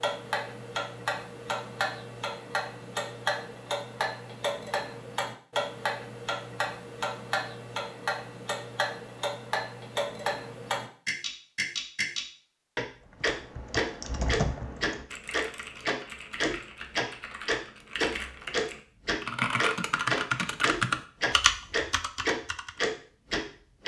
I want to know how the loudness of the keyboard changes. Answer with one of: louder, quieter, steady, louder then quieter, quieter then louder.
quieter then louder.